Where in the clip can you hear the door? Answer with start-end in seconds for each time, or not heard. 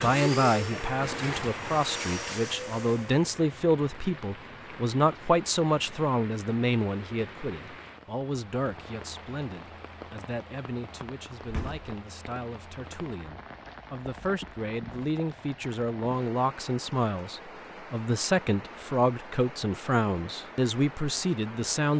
11.4-11.9.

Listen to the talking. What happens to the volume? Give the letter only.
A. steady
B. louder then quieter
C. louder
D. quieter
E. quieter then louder
E.